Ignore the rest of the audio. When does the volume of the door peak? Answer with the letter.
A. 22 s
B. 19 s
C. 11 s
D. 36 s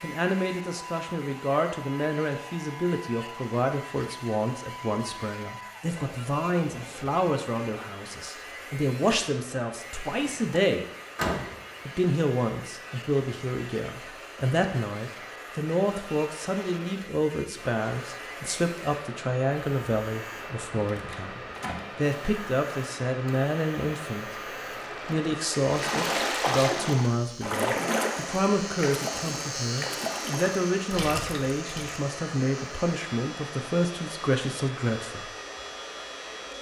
C.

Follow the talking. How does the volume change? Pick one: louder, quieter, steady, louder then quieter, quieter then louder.
steady.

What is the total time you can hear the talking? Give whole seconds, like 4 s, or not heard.
34 s.